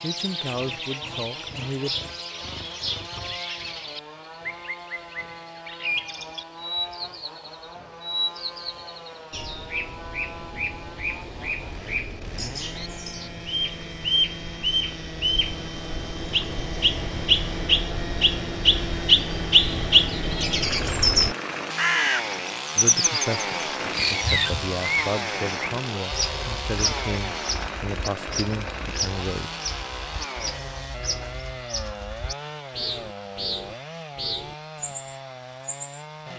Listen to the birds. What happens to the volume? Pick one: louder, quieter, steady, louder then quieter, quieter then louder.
louder then quieter.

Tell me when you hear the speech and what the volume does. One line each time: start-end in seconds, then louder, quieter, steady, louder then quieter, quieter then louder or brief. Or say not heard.
0.0-1.9 brief
22.8-29.5 steady.